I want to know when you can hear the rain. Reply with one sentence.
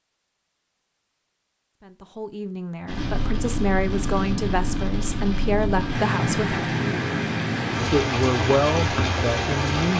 You can hear the rain from 2.9 to 9.9 s.